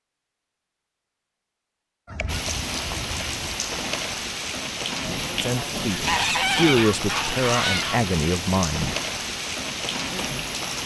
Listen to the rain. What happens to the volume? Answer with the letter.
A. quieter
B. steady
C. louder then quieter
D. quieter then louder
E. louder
B.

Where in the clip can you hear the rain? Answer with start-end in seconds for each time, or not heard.
2.2-10.8.